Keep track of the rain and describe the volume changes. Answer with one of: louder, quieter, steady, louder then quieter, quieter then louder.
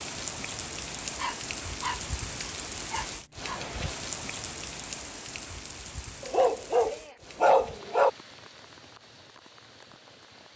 quieter.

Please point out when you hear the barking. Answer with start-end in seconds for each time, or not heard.
1.1-2.1, 2.9-3.6, 6.2-8.1.